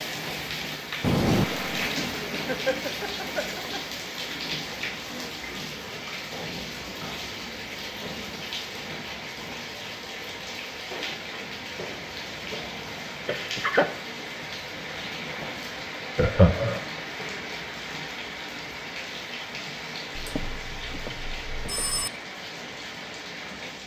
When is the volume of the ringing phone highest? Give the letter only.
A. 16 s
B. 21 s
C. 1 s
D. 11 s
C.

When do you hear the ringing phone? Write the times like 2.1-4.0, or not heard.
1.0-1.6, 20.1-22.1.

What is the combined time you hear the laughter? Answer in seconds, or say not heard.
3 s.